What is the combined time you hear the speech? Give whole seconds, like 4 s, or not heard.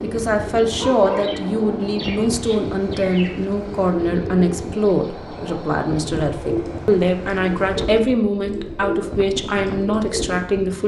11 s.